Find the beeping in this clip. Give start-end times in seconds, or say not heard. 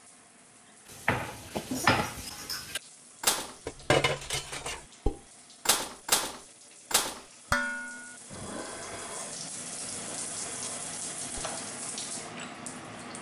not heard.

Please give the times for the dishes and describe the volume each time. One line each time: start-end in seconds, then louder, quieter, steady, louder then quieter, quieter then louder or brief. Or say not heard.
0.9-11.5 quieter.